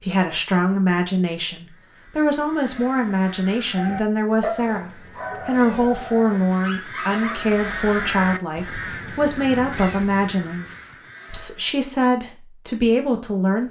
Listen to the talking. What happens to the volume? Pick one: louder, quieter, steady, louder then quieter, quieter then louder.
steady.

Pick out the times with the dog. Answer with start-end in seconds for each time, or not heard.
3.8-7.3.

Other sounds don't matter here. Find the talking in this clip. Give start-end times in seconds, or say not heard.
0.0-13.6.